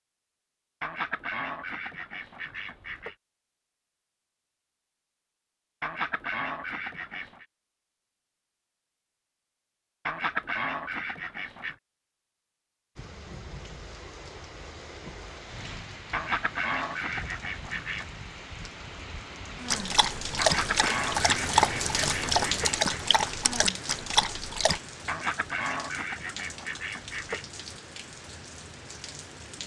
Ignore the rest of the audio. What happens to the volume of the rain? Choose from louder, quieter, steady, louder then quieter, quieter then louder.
louder then quieter.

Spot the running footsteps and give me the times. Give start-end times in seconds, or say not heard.
not heard.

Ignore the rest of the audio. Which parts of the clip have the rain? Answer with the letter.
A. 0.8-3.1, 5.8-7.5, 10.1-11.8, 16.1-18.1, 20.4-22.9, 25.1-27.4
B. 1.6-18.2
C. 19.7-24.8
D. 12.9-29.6
D.